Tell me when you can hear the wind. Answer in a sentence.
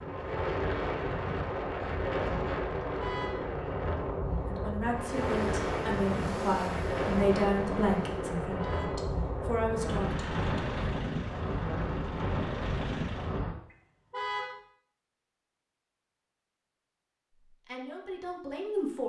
You can hear the wind from 0.0 to 13.6 s.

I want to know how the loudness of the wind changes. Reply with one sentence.
The loudness of the wind stays about the same.